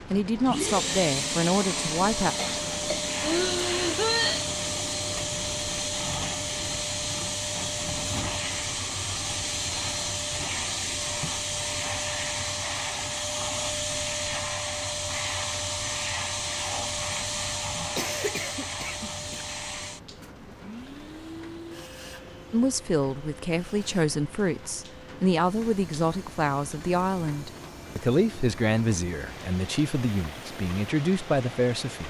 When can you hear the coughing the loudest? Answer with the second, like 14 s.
4 s.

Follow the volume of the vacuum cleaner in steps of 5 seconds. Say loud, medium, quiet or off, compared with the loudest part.
loud, loud, loud, loud, quiet, quiet, off.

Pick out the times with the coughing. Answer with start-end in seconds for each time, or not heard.
2.4-4.5, 17.9-19.4.